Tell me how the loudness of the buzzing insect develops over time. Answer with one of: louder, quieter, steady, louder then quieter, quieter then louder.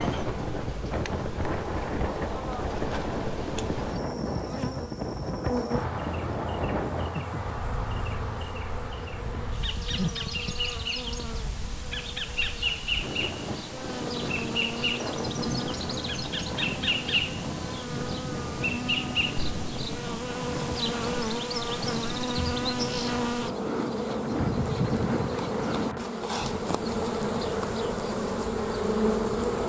louder.